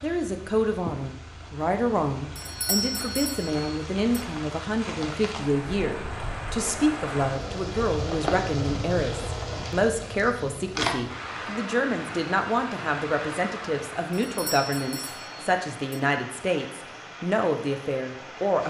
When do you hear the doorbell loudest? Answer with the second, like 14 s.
3 s.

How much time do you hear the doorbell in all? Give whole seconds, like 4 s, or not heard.
4 s.